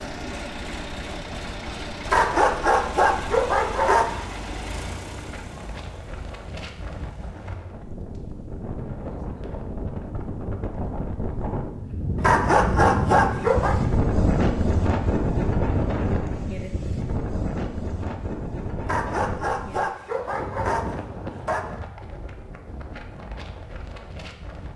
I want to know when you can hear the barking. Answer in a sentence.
The barking can be heard from 2.0 to 4.0 s, from 12.2 to 13.8 s and from 18.8 to 21.6 s.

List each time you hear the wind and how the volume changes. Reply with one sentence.
The wind can be heard from 0.2 to 24.7 s, getting louder then quieter.